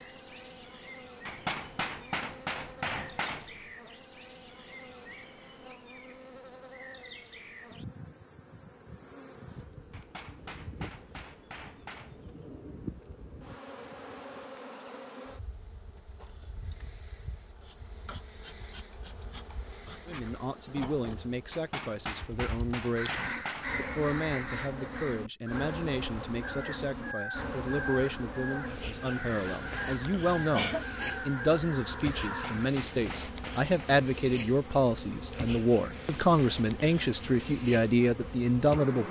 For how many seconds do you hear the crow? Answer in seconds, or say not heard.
10 s.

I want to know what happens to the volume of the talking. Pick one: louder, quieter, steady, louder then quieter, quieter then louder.
louder.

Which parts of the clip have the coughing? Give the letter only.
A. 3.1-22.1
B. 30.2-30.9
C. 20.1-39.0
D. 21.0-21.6
B.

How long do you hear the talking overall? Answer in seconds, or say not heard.
19 s.